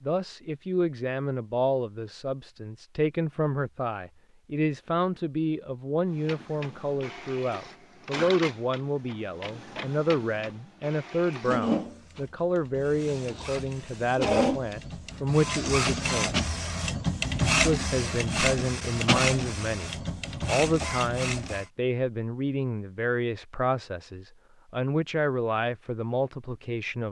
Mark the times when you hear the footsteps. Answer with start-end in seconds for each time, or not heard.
not heard.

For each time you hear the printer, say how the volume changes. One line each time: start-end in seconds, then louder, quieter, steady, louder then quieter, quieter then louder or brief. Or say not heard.
6.0-21.6 louder.